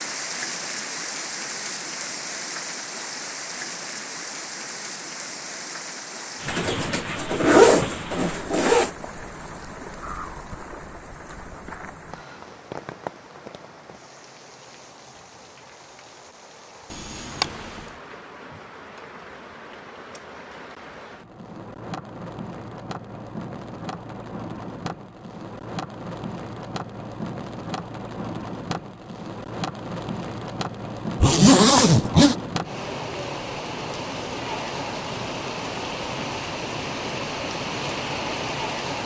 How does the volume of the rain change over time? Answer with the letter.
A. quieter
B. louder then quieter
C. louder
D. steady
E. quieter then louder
E.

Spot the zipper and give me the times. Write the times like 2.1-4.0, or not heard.
6.5-8.9, 16.9-17.8, 31.2-32.4.